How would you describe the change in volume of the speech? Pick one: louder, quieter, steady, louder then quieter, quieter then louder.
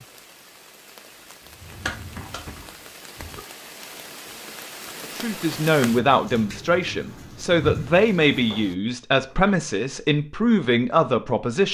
steady.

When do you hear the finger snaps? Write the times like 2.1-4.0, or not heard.
1.9-2.4.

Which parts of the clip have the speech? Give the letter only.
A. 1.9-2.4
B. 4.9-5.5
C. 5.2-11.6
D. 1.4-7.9
C.